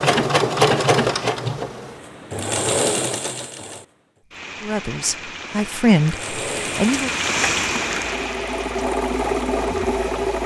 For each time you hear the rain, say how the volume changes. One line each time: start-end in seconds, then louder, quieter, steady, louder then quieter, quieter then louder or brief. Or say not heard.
4.2-10.4 louder then quieter.